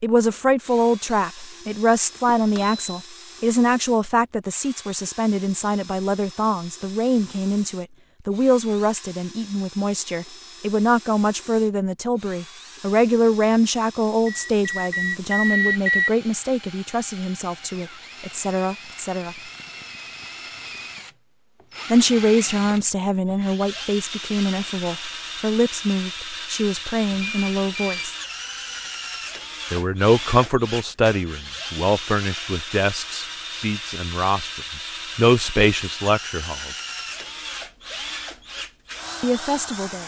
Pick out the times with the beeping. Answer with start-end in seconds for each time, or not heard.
2.2-3.0, 14.2-16.1, 27.1-28.1.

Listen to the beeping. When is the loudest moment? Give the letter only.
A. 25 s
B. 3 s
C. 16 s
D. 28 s
C.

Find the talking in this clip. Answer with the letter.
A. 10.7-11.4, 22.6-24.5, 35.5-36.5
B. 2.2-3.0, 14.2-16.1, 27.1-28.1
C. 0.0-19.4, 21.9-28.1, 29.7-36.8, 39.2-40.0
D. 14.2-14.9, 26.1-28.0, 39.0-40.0
C.